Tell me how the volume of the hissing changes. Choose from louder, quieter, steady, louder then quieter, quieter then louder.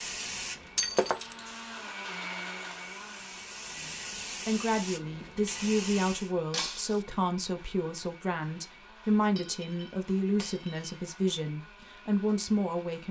quieter then louder.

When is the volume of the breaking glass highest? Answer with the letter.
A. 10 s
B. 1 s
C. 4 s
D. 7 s
B.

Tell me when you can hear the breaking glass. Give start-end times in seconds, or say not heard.
0.8-1.4, 6.5-7.0, 9.3-10.9.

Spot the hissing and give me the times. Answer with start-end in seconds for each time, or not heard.
0.0-6.3.